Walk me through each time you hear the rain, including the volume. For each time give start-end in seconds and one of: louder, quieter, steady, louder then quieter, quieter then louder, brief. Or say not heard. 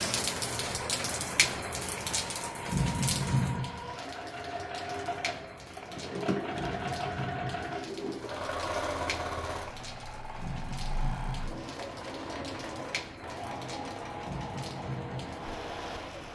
0.0-16.3 quieter.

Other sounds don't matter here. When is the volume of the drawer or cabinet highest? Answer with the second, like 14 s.
6 s.